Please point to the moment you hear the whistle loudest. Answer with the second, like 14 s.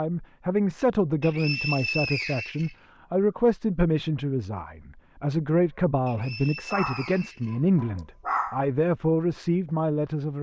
2 s.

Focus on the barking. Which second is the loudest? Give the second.
8 s.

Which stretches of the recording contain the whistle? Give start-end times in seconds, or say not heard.
1.2-2.8, 6.0-8.0.